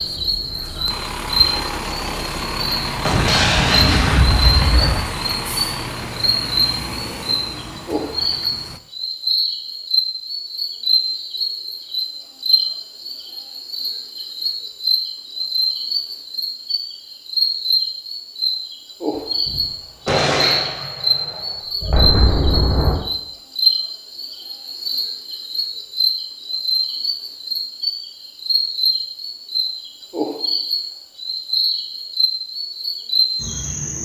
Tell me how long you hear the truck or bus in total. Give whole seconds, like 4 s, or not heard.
9 s.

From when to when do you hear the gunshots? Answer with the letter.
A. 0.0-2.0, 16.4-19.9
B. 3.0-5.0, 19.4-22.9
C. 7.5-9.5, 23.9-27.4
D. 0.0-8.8
B.